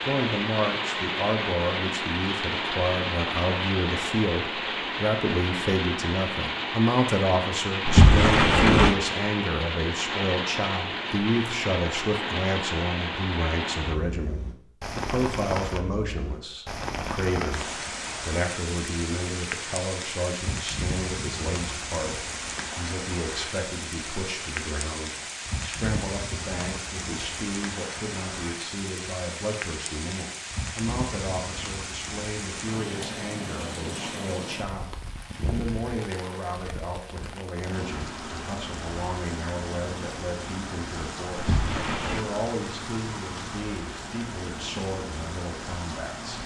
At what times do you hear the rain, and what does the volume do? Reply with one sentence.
The rain can be heard from 0.0 to 46.4 s, getting quieter.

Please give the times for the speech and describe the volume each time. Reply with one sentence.
You can hear the speech from 0.0 to 46.4 s, getting quieter.